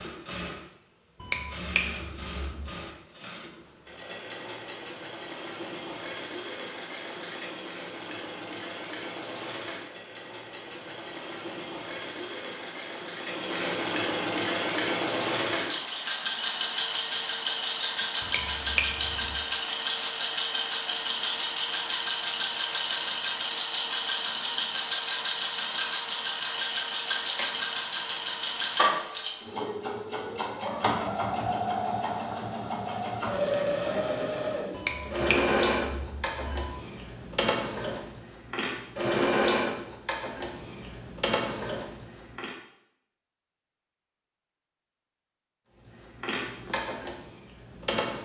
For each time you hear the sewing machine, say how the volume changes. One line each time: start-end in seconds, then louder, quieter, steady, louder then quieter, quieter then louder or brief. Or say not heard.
0.0-42.5 louder
45.8-48.2 brief.